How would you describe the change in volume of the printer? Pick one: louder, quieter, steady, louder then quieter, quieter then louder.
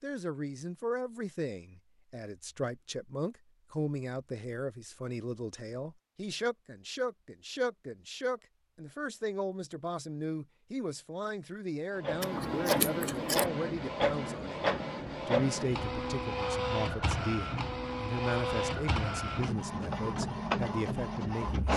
steady.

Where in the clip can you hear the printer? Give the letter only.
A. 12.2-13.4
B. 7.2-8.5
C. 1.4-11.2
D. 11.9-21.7
D.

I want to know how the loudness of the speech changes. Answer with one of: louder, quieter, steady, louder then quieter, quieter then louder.
steady.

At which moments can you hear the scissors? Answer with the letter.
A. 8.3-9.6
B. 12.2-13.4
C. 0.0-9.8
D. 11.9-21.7
B.